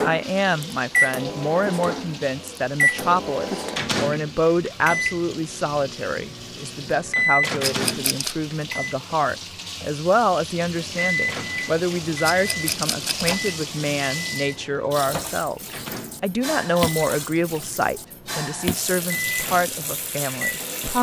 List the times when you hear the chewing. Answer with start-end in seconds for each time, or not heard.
not heard.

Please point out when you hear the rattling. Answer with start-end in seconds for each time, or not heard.
7.6-8.3, 12.2-13.3.